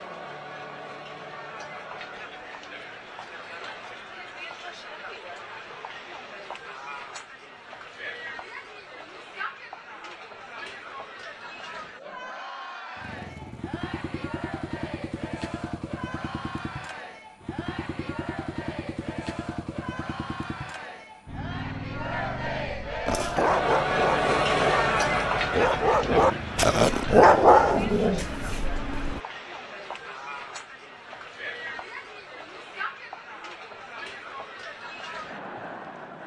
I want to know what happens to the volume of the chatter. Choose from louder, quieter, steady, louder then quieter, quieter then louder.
louder then quieter.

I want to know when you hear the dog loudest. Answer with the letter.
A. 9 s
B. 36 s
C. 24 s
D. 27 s
D.